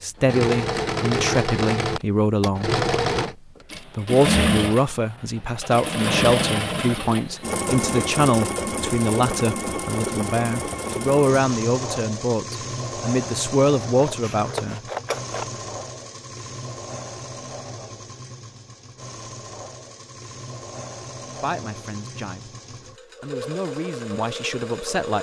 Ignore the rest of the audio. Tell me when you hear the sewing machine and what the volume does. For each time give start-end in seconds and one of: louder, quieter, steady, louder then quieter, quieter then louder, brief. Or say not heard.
0.1-25.1 quieter.